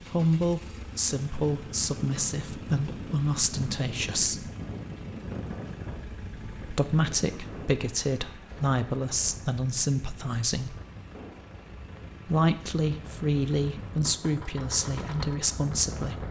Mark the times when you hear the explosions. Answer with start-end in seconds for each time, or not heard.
11.1-11.7.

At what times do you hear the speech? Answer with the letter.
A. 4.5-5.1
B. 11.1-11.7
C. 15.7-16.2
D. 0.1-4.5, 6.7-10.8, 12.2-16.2
D.